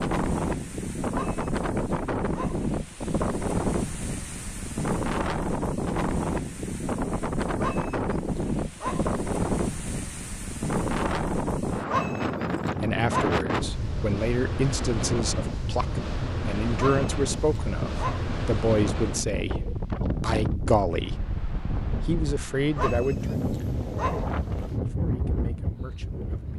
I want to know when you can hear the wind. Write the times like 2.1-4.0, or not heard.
0.0-26.5.